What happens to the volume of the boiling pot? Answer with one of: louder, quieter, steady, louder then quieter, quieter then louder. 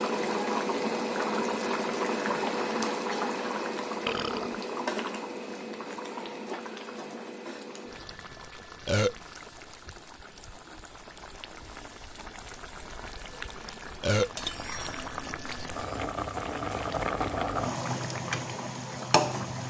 quieter then louder.